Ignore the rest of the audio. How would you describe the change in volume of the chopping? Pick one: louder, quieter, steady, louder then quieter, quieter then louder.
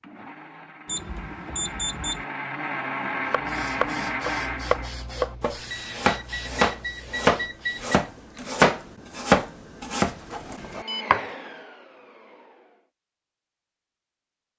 louder then quieter.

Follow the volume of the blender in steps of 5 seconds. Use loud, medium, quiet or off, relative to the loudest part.
loud, off, medium.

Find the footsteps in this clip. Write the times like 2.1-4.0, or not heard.
not heard.